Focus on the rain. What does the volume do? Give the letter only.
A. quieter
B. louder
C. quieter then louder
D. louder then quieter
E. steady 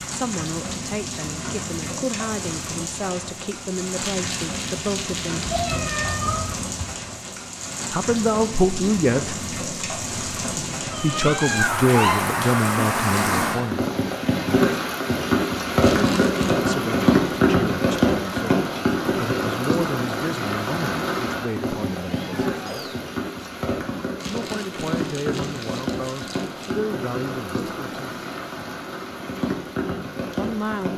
D.